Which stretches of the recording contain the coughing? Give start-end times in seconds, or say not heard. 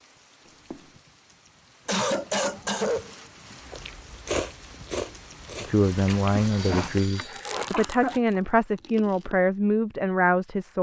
1.9-3.1, 6.5-8.2.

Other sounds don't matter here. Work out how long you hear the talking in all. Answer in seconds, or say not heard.
5 s.